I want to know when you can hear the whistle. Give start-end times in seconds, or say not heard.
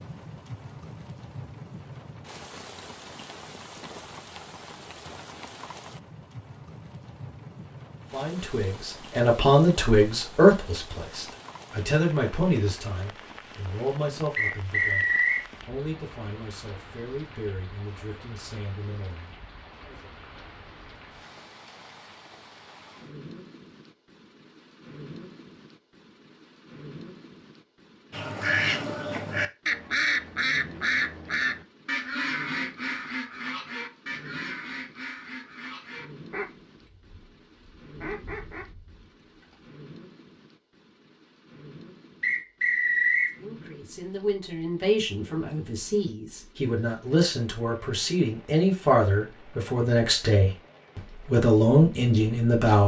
14.3-15.4, 42.2-43.4.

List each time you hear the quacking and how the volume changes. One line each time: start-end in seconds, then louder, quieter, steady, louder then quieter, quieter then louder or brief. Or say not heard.
28.1-39.7 quieter.